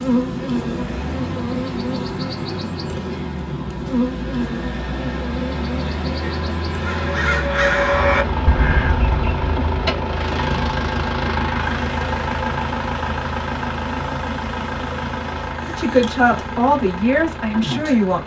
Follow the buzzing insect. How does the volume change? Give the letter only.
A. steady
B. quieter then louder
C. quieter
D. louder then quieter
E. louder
C.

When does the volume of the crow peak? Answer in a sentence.
The loudest moment of the crow is at 8 seconds.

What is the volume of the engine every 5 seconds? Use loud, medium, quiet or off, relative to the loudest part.
quiet, loud, loud, medium.